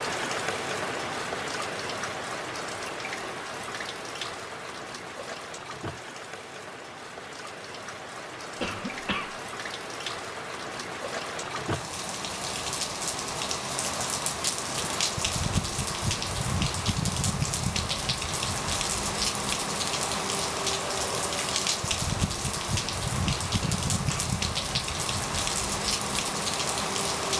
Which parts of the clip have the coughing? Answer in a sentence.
You can hear the coughing from 8.6 to 9.3 s and from 23.6 to 24.3 s.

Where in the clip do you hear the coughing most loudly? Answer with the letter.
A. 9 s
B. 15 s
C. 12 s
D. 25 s
A.